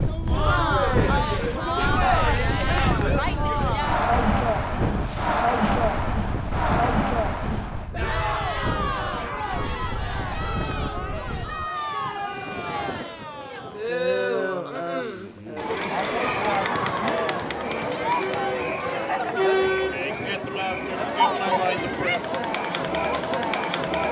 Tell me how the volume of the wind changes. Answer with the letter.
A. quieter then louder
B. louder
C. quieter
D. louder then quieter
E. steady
C.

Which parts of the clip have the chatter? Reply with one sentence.
You can hear the chatter from 0.1 to 24.0 s.